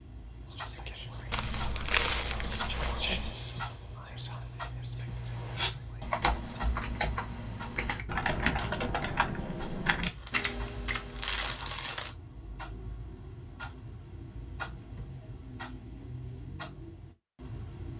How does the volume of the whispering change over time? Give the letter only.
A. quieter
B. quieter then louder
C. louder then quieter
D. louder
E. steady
C.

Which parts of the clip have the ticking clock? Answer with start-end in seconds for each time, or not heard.
0.0-17.9.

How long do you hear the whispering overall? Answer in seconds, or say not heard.
6 s.